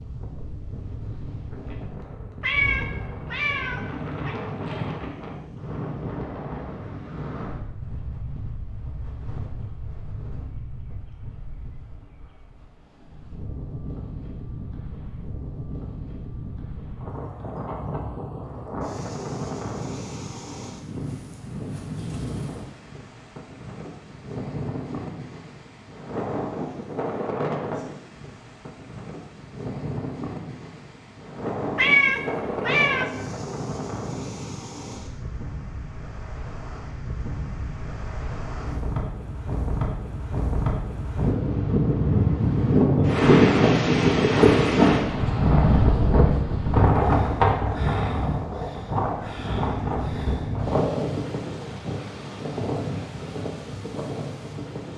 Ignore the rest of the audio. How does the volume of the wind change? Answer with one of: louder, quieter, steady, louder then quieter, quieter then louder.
louder.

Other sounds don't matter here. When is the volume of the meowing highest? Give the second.
32 s.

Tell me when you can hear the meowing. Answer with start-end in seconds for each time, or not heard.
2.4-4.3, 31.8-33.0.